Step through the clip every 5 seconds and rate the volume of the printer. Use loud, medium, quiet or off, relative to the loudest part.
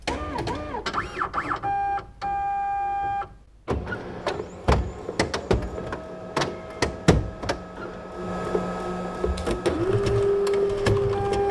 medium, medium, loud.